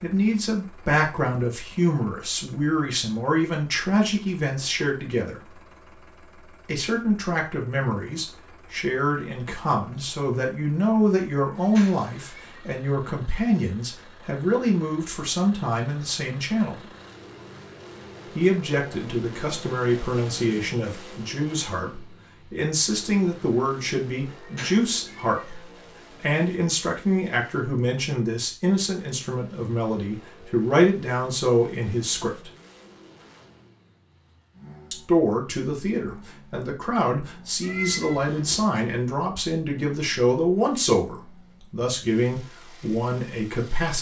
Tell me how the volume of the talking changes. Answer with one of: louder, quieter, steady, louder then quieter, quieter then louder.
steady.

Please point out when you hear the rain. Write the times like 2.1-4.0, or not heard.
not heard.